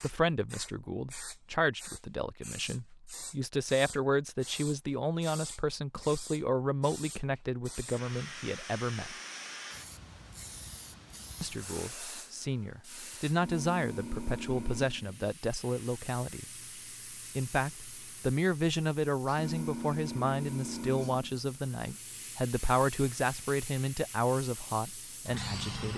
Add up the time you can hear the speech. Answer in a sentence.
The speech can be heard for 23 seconds in total.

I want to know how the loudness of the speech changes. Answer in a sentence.
The volume of the speech stays about the same.